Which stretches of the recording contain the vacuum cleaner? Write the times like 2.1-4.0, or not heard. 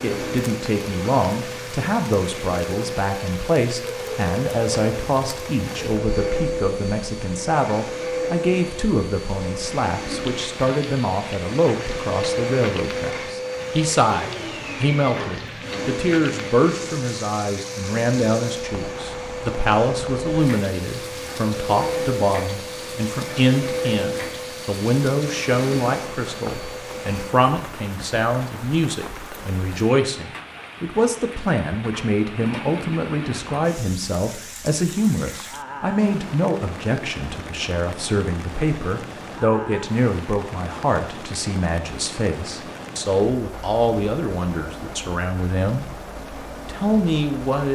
0.0-27.4.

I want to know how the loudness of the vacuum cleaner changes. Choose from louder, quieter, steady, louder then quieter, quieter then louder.
steady.